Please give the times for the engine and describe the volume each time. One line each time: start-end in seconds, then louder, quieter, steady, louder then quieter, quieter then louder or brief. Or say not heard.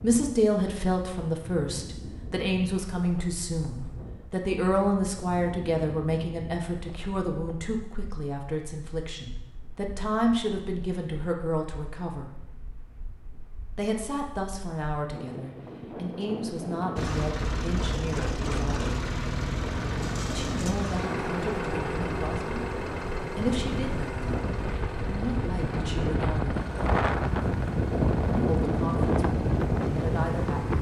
16.9-30.7 quieter.